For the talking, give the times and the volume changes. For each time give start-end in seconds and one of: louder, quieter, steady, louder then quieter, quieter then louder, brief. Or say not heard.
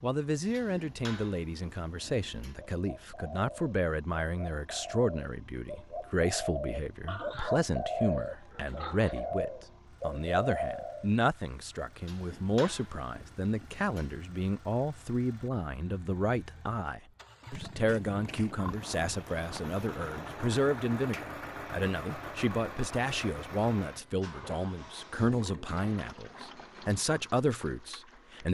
0.0-28.4 steady.